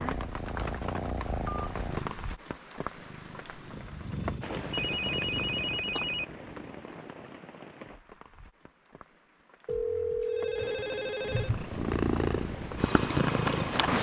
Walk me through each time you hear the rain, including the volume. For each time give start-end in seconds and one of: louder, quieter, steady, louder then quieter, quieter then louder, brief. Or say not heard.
0.0-13.8 quieter then louder.